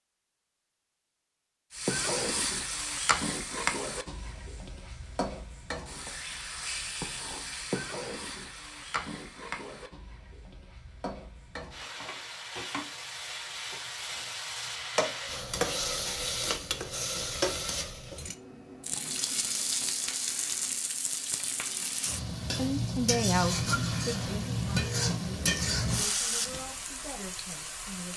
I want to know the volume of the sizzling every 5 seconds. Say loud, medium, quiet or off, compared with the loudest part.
loud, medium, medium, loud, loud, loud.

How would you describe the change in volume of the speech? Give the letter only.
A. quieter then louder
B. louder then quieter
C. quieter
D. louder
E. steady
C.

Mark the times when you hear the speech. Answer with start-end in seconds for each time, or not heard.
22.6-28.1.